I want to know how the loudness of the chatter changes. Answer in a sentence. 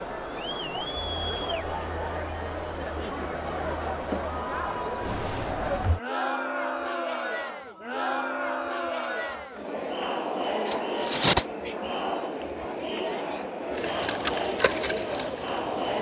The volume of the chatter stays about the same.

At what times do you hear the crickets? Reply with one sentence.
The crickets can be heard from 5.0 to 15.9 s.